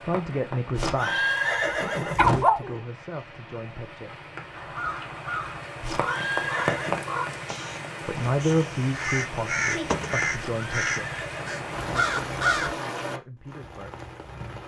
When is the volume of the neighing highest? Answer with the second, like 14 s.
1 s.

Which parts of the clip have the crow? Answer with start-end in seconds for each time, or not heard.
4.5-12.8.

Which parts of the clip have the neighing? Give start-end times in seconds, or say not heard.
0.7-2.5, 5.8-7.0, 10.3-12.1.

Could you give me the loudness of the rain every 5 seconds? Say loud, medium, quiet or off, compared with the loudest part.
medium, loud, loud.